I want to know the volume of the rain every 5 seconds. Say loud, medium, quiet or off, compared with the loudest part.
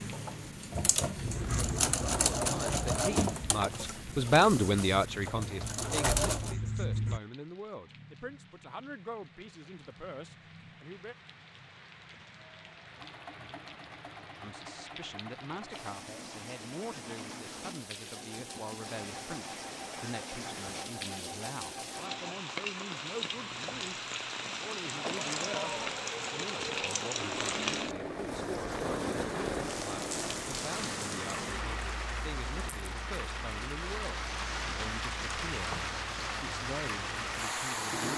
quiet, quiet, quiet, medium, loud, loud, loud, loud.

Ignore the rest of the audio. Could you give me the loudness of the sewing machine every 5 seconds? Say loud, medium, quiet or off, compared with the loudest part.
loud, loud, quiet, quiet, quiet, medium, medium, medium.